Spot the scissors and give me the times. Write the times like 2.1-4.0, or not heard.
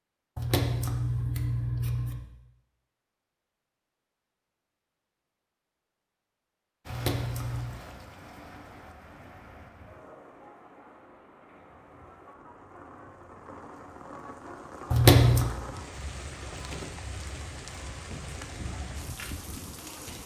0.3-2.2, 6.8-7.8, 14.9-15.5.